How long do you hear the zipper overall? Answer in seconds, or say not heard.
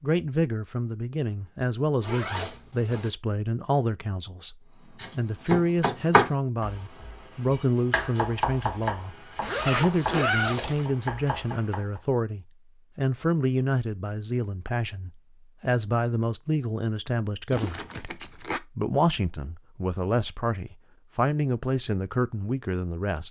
4 s.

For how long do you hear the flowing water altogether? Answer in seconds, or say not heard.
not heard.